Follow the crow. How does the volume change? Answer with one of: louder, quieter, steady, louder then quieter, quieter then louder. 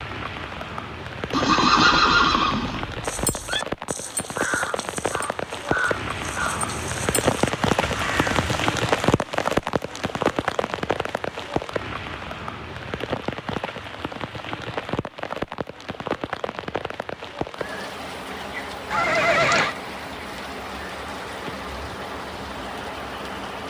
louder.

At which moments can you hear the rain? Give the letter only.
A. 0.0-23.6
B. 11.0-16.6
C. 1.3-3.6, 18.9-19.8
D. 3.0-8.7
A.